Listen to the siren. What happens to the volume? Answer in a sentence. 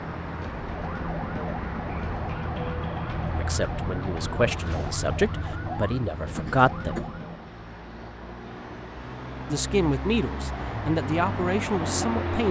The loudness of the siren stays about the same.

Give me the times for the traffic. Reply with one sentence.
You can hear the traffic from 0.0 to 12.4 s.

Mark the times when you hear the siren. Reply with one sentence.
You can hear the siren from 0.0 to 7.5 s.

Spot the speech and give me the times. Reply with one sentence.
You can hear the speech from 3.3 to 7.0 s and from 9.4 to 12.4 s.